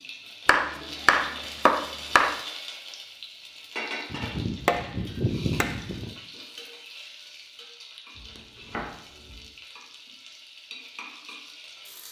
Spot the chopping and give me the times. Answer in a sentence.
You can hear the chopping from 0.5 to 2.4 s, from 4.1 to 6.1 s and from 8.2 to 9.4 s.